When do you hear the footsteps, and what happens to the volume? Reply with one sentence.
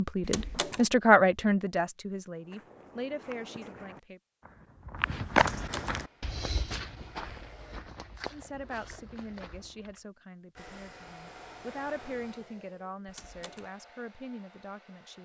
You can hear the footsteps from 2.5 to 10.0 s, getting louder then quieter.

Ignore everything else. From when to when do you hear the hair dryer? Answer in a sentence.
You can hear the hair dryer from 6.0 to 7.8 s and from 10.6 to 15.2 s.